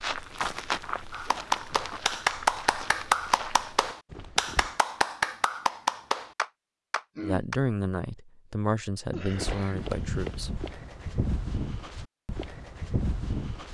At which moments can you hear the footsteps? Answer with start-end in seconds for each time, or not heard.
0.0-4.8, 9.3-13.6.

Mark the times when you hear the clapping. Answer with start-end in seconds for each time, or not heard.
1.1-7.5.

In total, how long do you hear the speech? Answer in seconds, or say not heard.
3 s.